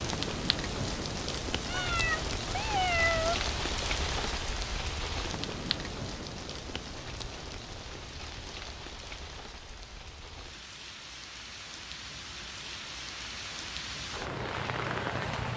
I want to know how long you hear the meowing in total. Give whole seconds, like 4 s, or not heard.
2 s.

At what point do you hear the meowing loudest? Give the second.
3 s.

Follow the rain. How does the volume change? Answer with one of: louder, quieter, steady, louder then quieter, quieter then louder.
quieter then louder.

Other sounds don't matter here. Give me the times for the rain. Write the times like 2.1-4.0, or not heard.
0.0-15.5.